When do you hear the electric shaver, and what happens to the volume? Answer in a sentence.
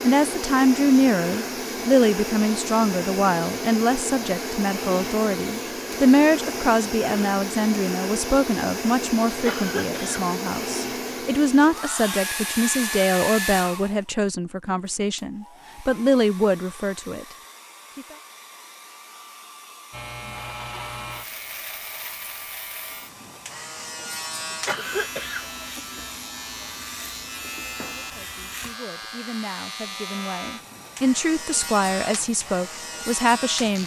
You can hear the electric shaver from 19.9 to 33.8 s, at a steady volume.